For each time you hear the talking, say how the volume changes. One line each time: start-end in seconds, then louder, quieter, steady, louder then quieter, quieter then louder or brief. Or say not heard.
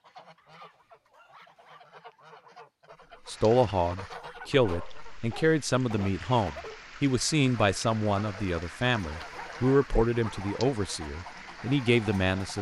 3.2-12.5 steady.